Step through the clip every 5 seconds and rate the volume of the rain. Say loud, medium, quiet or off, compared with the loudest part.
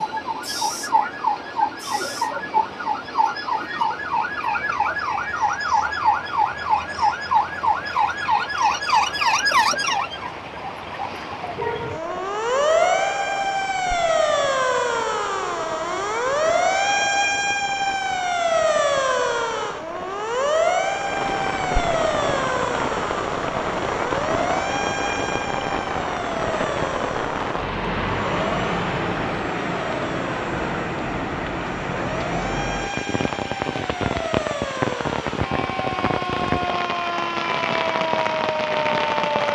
quiet, medium, medium, medium, loud, loud, loud, loud.